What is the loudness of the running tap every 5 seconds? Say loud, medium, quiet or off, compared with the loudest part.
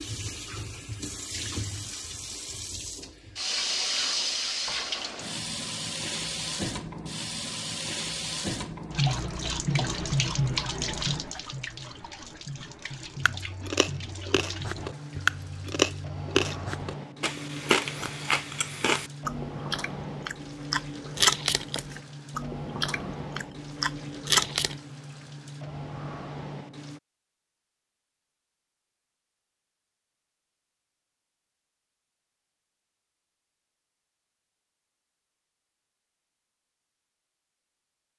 loud, loud, loud, medium, medium, medium, off, off.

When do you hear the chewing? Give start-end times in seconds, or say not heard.
13.2-24.8.